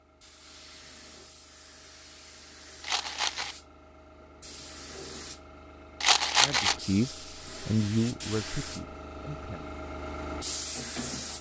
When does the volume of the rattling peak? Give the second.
6 s.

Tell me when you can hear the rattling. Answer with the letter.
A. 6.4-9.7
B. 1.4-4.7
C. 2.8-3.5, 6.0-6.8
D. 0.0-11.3
C.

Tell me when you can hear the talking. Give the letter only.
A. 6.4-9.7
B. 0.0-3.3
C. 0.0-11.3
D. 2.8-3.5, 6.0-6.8
A.